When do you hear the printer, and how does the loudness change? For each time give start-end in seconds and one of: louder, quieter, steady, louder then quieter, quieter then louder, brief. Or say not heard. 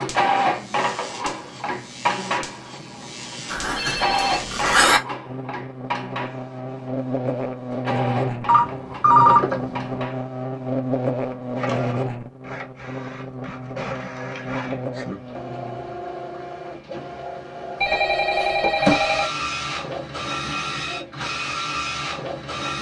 0.0-22.7 quieter then louder.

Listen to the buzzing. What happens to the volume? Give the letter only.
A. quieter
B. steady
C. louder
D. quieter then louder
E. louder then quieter
E.